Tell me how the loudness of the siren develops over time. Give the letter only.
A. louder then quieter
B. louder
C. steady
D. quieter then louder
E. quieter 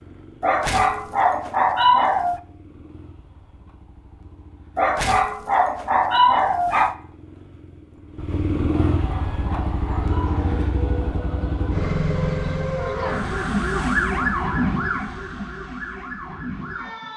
A.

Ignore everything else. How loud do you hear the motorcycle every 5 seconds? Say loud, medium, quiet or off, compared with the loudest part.
quiet, loud, loud, off.